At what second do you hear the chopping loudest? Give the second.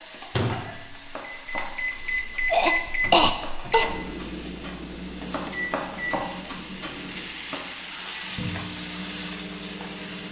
6 s.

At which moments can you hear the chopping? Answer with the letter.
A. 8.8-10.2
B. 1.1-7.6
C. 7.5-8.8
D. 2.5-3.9
B.